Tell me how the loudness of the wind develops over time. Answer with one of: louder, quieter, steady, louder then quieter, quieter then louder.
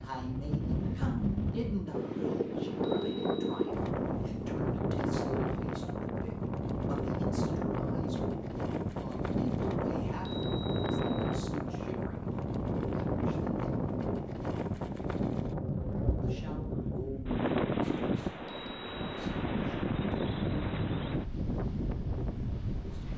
steady.